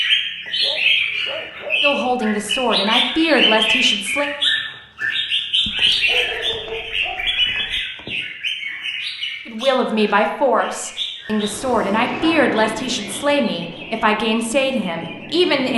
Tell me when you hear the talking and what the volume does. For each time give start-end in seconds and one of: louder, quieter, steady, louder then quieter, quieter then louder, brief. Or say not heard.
1.8-4.3 brief
9.4-15.7 steady.